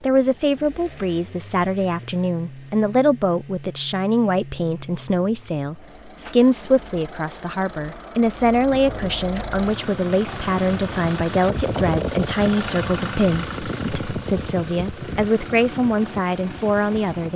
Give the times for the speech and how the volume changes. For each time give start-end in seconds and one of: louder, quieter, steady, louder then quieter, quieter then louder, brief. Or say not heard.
0.0-17.3 steady.